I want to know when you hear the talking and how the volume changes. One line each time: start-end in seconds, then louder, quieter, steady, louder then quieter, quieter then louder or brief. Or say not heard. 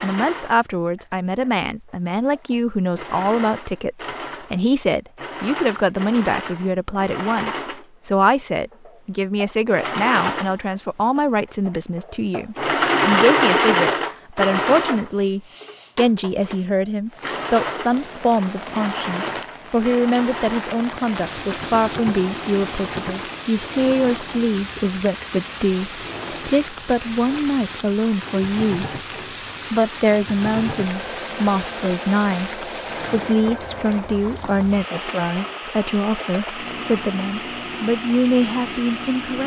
0.0-28.9 steady
29.7-39.4 steady.